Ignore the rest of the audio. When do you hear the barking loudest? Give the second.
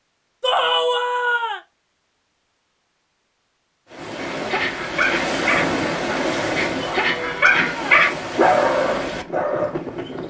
8 s.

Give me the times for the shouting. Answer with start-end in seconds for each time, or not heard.
0.4-1.6, 6.8-8.1.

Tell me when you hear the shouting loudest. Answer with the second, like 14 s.
1 s.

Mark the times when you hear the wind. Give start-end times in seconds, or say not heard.
3.9-10.2.